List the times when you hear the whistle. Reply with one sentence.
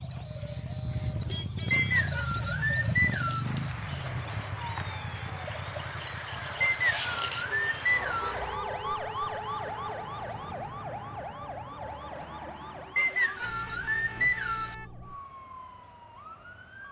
The whistle can be heard from 1.7 to 3.5 s, from 6.6 to 8.4 s and from 12.9 to 14.8 s.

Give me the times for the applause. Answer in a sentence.
You can hear the applause from 3.4 to 8.6 s.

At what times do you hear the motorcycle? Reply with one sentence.
The motorcycle can be heard from 0.0 to 11.9 s.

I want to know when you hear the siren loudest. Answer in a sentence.
The volume of the siren peaks at 9 seconds.